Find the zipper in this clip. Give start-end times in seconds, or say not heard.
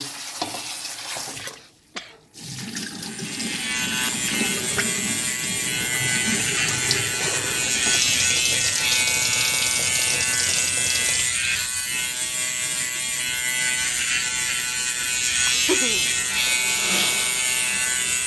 not heard.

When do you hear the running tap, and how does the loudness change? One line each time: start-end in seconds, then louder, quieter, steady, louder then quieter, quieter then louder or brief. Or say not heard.
0.0-11.3 louder
16.0-18.2 brief.